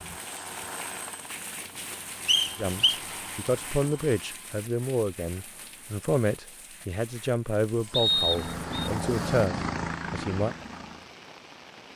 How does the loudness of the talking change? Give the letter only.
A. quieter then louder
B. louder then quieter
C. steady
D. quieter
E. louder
C.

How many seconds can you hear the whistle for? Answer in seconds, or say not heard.
2 s.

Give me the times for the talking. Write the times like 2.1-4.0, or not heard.
2.5-10.6.